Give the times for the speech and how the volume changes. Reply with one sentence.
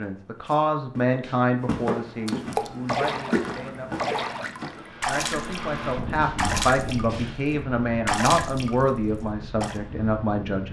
The speech can be heard from 0.0 to 10.6 s, getting quieter then louder.